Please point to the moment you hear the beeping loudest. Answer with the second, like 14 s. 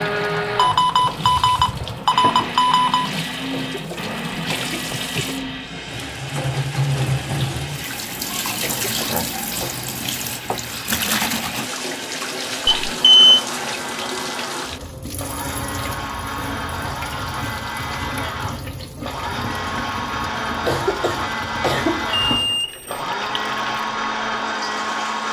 13 s.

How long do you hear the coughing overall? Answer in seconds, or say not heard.
4 s.